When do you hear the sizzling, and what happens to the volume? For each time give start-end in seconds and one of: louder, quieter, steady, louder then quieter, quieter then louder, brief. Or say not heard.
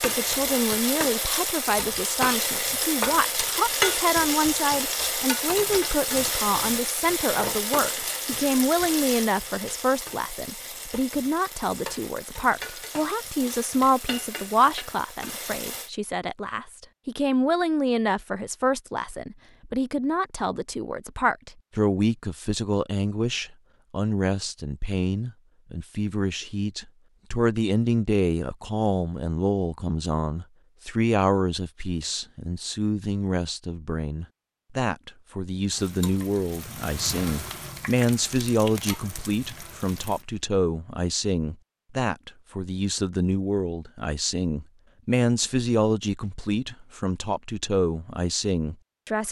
0.0-15.9 quieter
35.7-40.4 louder then quieter.